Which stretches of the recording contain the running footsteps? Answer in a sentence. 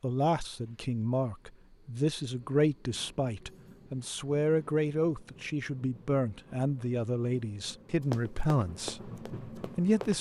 You can hear the running footsteps from 8.1 to 10.1 s.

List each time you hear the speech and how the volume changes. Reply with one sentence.
The speech can be heard from 0.0 to 10.1 s, at a steady volume.